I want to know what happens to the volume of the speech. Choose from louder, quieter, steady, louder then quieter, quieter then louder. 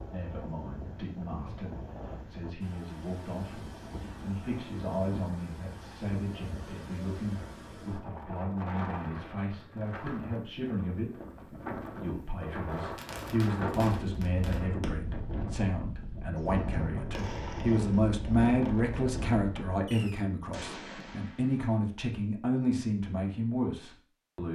louder.